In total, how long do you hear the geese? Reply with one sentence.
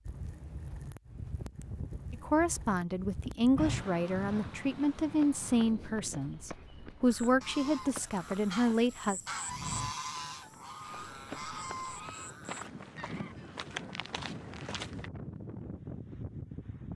The geese can be heard for 6 seconds in total.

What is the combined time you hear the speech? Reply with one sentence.
You can hear the speech for 7 seconds altogether.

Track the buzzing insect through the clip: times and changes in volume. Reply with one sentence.
You can't hear the buzzing insect here.